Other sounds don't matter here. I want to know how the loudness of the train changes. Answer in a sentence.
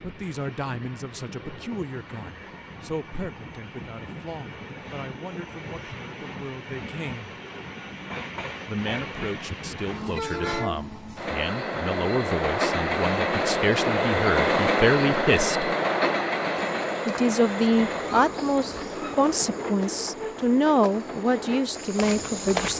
The loudness of the train goes up, then down.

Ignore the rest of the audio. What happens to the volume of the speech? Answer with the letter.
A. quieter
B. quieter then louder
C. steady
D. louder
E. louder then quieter
D.